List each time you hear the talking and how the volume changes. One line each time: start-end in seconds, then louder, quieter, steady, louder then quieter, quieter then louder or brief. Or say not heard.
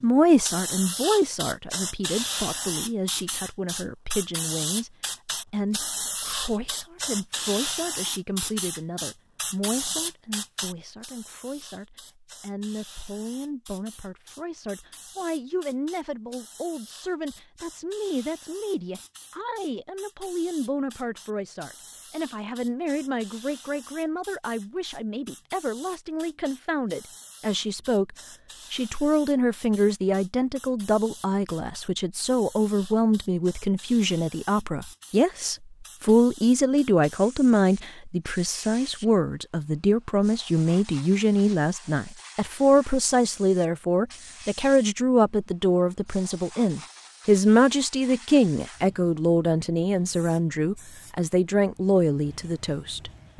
0.0-4.9 quieter
5.5-53.3 louder.